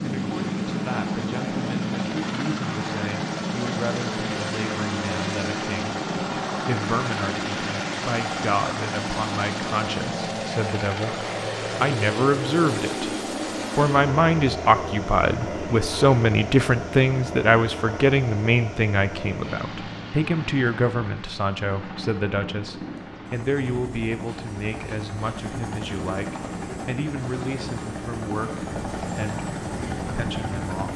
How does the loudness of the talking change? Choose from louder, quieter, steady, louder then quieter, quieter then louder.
louder then quieter.